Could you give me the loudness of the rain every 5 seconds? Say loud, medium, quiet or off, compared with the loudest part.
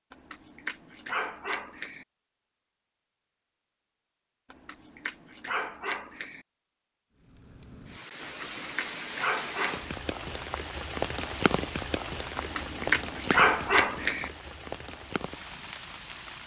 off, loud, loud, medium.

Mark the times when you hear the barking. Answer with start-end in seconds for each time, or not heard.
0.1-2.0, 4.5-6.5, 8.2-9.9, 12.3-14.3.